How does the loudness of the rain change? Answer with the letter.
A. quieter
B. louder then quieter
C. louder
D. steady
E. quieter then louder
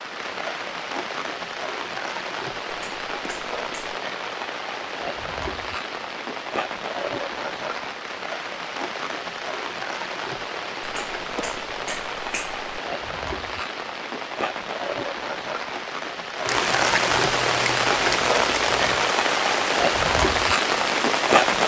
C.